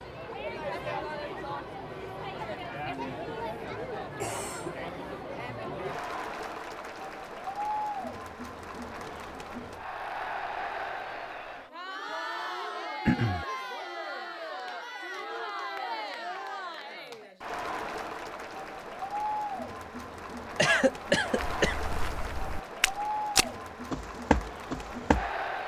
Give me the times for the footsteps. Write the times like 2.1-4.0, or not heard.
21.4-25.3.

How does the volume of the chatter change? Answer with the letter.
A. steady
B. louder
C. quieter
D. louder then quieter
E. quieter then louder
A.